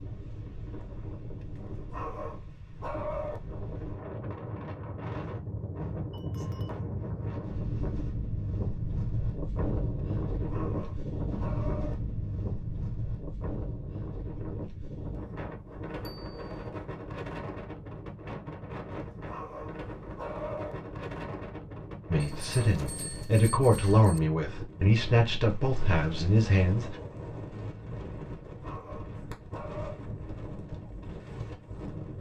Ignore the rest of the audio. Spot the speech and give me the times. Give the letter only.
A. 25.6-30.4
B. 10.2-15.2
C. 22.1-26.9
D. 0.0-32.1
C.